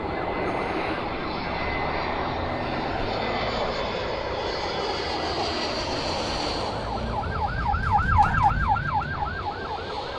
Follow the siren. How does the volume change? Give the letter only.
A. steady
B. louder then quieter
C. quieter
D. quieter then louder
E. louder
E.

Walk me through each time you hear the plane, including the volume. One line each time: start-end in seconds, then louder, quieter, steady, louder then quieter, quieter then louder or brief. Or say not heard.
0.0-10.1 quieter.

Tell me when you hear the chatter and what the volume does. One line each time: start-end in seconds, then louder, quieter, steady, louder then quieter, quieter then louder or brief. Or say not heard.
not heard.